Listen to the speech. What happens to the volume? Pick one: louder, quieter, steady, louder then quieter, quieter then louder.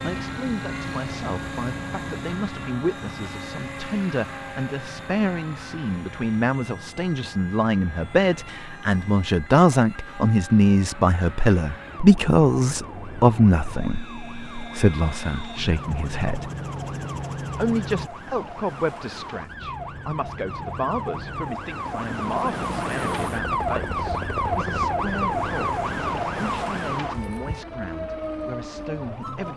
louder then quieter.